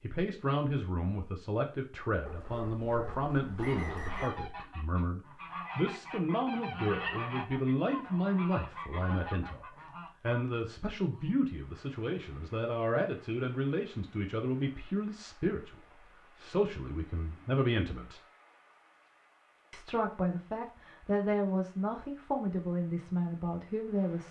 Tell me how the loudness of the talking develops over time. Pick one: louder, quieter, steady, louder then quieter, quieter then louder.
steady.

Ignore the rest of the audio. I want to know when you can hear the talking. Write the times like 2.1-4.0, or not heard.
0.0-18.2, 19.7-24.2.